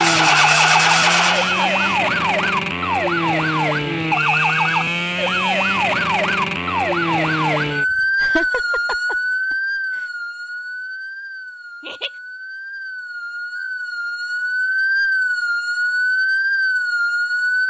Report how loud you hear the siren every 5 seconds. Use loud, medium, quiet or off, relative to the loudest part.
loud, loud, medium, loud.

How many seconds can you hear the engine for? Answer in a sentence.
You can hear the engine for 2 seconds altogether.